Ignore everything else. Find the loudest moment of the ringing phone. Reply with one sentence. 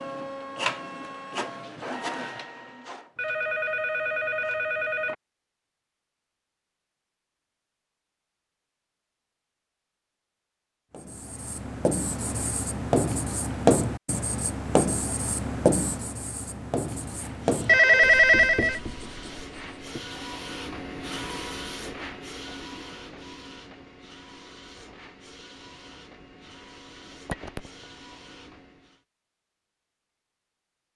The volume of the ringing phone peaks at 18 seconds.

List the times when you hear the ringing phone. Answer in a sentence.
You can hear the ringing phone from 3.1 to 5.2 s, from 17.6 to 18.8 s and from 27.2 to 27.7 s.